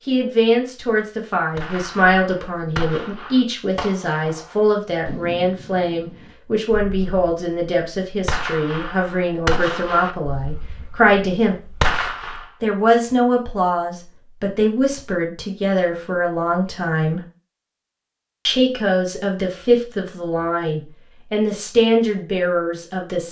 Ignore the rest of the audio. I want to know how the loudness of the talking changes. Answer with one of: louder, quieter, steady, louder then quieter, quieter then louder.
steady.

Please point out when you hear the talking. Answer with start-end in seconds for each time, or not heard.
0.1-11.6, 12.6-17.2, 18.4-23.2.